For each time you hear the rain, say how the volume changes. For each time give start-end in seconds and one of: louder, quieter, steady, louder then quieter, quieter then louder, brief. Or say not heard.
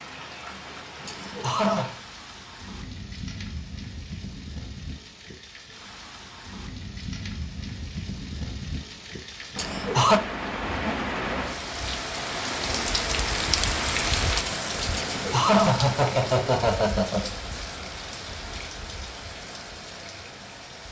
0.0-20.8 louder then quieter.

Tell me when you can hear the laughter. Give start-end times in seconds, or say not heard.
1.1-1.9, 9.6-10.2, 14.9-17.4.